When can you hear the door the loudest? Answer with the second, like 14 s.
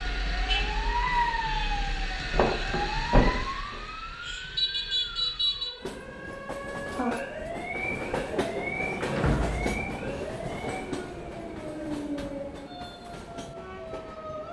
3 s.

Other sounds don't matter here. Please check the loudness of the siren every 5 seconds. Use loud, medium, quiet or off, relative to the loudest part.
loud, loud, medium.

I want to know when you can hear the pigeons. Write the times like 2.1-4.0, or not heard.
not heard.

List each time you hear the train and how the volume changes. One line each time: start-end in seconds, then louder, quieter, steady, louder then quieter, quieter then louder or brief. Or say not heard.
5.8-14.4 louder then quieter.